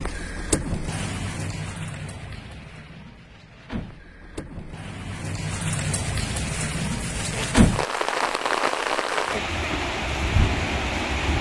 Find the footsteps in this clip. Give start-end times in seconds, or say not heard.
not heard.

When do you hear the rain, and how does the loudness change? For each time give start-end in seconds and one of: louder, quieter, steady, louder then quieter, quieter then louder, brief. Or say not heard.
0.0-11.3 quieter then louder.